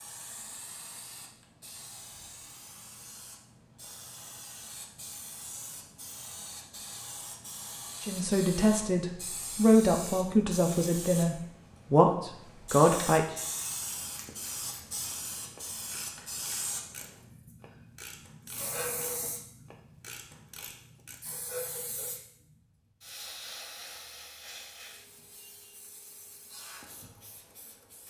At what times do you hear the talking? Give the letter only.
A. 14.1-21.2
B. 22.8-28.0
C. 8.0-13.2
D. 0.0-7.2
C.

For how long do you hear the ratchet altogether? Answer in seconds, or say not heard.
7 s.